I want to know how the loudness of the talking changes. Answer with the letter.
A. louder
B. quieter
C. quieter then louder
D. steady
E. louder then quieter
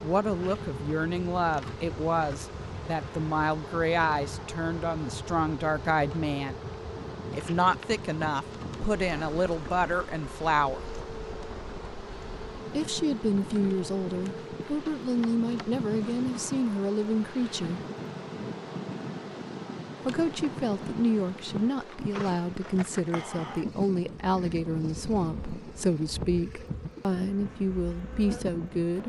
D.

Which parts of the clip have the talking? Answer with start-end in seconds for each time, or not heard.
0.0-6.6, 7.3-10.8, 12.7-17.8, 20.1-29.0.